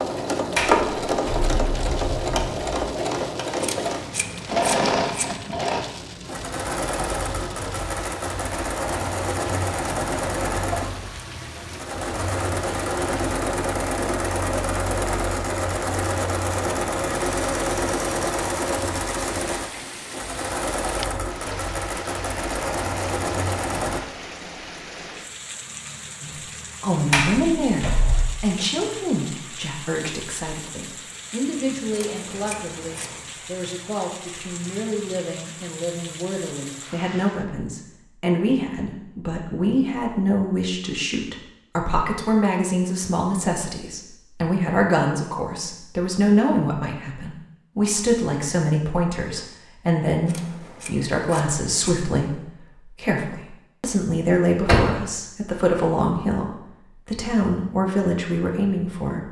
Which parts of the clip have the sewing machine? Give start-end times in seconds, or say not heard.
0.0-24.0.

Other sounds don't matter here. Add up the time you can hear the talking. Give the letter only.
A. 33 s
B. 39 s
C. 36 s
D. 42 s
A.